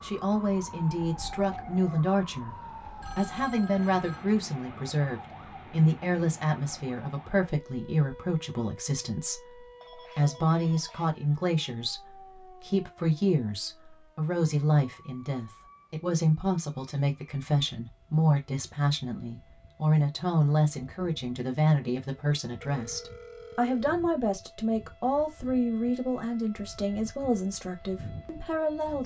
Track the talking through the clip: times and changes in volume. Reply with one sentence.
The talking can be heard briefly from 0.0 to 2.5 s; and from 3.1 to 29.0 s, at a steady volume.